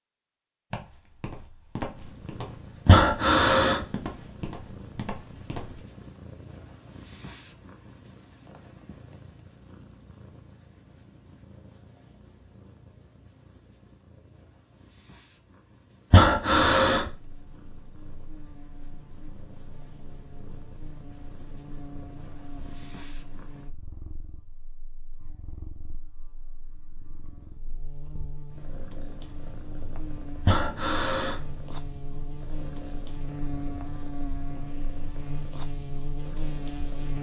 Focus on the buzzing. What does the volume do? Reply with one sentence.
The volume of the buzzing goes up.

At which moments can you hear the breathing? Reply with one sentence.
The breathing can be heard from 2.9 to 3.9 s, from 16.1 to 17.1 s and from 30.4 to 31.4 s.